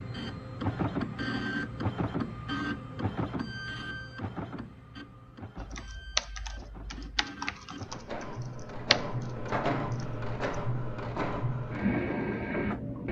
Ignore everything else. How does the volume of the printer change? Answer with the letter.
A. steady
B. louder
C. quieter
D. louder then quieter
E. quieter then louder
E.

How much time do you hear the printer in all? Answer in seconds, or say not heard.
13 s.